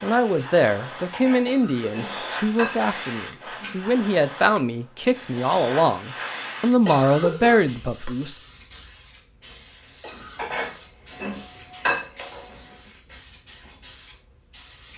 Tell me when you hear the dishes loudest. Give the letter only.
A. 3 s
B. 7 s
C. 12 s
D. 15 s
C.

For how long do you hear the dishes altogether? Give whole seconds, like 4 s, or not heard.
5 s.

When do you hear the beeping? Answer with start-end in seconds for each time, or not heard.
not heard.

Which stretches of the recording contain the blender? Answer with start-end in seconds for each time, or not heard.
not heard.